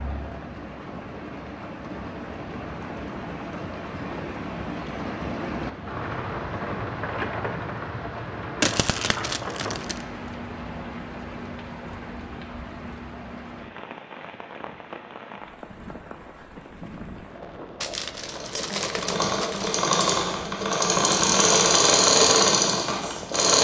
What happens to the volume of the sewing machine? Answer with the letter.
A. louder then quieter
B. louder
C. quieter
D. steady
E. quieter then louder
B.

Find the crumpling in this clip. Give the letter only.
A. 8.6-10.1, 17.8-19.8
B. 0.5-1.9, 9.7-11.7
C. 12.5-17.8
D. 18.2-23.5
A.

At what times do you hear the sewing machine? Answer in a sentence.
You can hear the sewing machine from 18.2 to 23.5 s.